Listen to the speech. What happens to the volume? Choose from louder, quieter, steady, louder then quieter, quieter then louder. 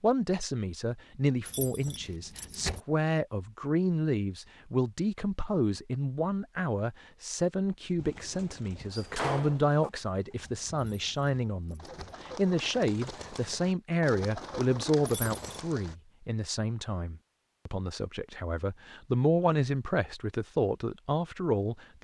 steady.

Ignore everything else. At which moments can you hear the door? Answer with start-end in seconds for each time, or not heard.
8.9-9.9.